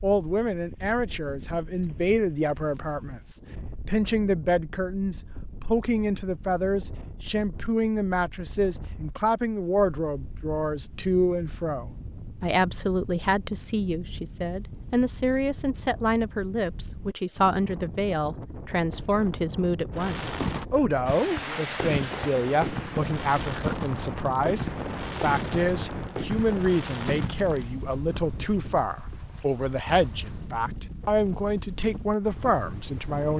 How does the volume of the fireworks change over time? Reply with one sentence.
The loudness of the fireworks stays about the same.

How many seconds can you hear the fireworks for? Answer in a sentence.
You can hear the fireworks for 8 seconds altogether.